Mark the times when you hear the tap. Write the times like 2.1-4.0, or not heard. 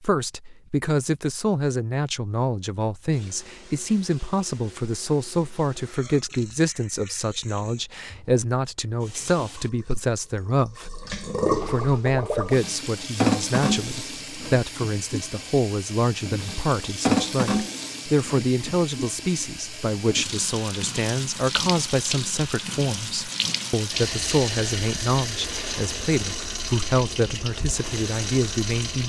3.1-29.0.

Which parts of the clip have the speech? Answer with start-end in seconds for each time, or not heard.
0.0-29.0.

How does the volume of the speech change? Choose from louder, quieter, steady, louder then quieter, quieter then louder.
steady.